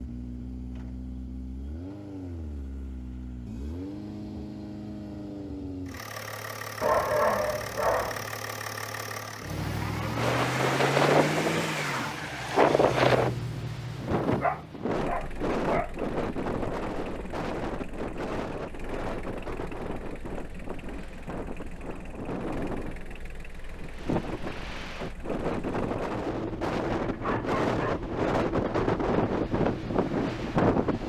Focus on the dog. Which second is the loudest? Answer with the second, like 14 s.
7 s.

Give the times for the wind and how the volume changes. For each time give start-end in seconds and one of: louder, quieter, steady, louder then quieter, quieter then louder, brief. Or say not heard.
10.2-31.0 quieter then louder.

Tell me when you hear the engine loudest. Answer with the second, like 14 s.
11 s.